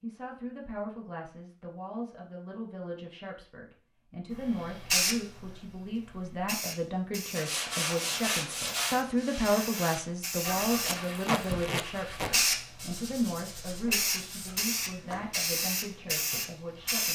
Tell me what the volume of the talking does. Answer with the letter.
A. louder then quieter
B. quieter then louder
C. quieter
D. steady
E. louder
A.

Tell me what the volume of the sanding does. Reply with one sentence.
The loudness of the sanding goes down.